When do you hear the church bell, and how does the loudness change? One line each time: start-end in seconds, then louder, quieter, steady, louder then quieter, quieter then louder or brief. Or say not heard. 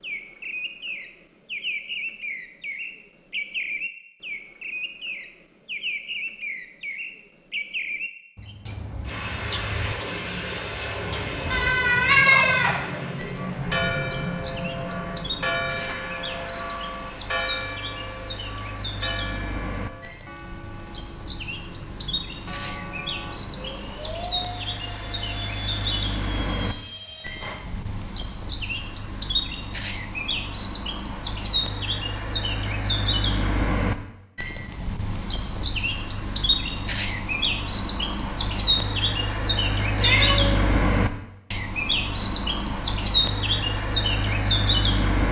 13.3-23.4 quieter.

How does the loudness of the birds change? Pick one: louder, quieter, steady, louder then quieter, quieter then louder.
louder.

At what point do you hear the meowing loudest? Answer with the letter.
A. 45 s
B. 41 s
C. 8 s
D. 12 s
D.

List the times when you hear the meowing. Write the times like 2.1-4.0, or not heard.
11.5-12.8, 40.0-40.7.